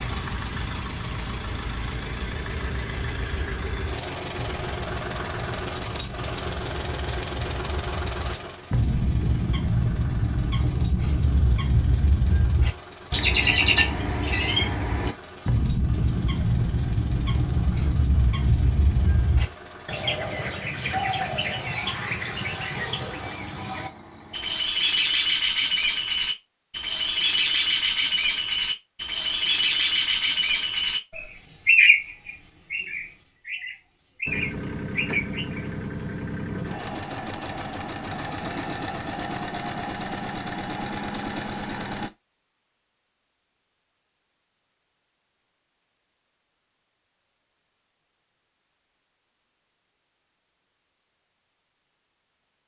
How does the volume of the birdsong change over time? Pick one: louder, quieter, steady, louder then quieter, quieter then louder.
louder.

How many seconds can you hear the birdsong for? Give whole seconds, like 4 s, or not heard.
36 s.